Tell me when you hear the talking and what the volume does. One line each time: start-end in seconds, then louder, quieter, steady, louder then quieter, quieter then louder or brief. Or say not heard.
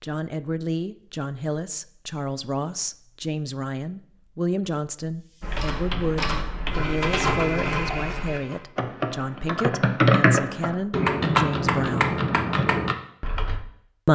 0.0-12.2 steady.